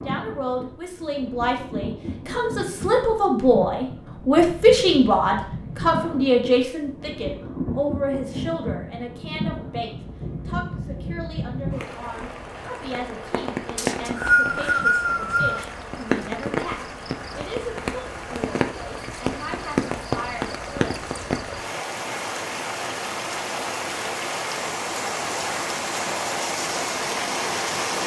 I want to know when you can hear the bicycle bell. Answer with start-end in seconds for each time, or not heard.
not heard.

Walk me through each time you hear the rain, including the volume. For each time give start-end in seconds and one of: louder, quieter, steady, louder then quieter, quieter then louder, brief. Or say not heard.
0.0-28.0 louder.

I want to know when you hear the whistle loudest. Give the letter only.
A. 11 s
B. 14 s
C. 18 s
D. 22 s
B.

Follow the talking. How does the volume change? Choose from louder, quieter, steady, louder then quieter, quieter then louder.
quieter.